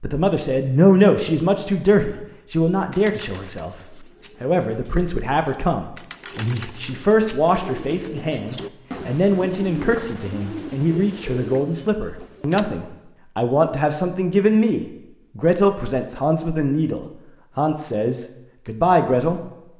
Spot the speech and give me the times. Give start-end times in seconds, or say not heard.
0.0-19.4.